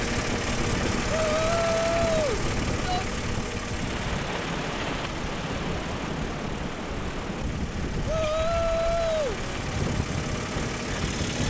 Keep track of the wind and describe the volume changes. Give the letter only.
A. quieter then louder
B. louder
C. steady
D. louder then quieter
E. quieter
C.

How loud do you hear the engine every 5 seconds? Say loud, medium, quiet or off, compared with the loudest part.
loud, medium, loud.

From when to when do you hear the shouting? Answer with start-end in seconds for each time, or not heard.
1.1-3.0, 8.1-9.4.